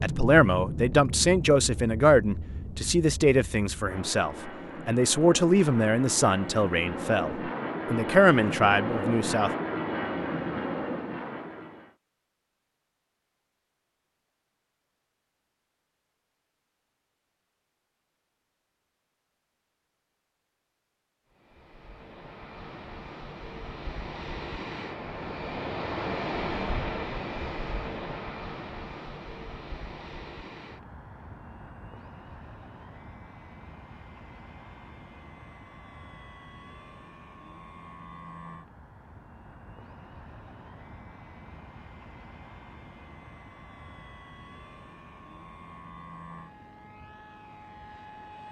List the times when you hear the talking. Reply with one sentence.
The talking can be heard from 0.0 to 9.5 s.